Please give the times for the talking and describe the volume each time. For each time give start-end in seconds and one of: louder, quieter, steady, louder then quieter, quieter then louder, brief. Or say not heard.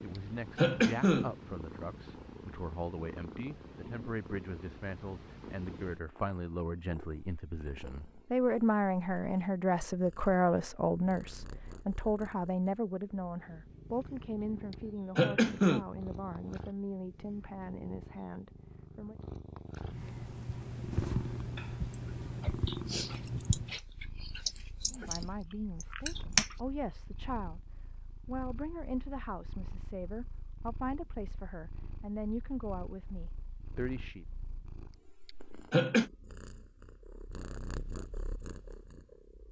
0.0-19.1 louder then quieter
24.9-34.2 steady.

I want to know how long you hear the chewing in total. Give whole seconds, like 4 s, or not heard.
6 s.